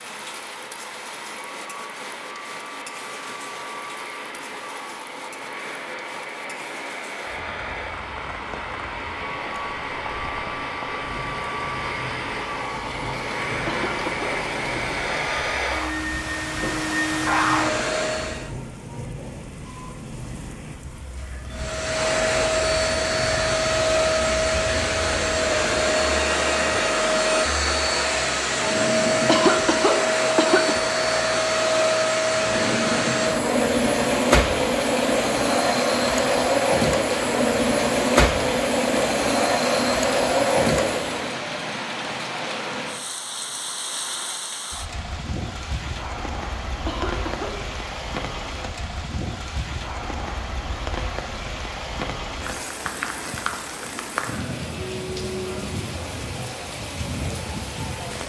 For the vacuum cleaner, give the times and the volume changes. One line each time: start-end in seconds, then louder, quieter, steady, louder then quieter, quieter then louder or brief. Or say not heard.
0.0-18.5 louder
21.5-41.4 steady.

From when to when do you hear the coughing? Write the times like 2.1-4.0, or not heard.
13.7-14.9, 29.2-30.8, 46.9-47.5.